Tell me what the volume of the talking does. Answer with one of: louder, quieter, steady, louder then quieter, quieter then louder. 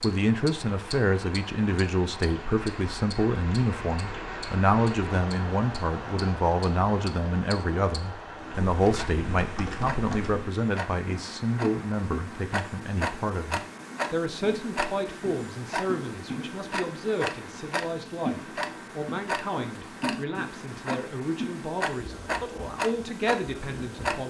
quieter.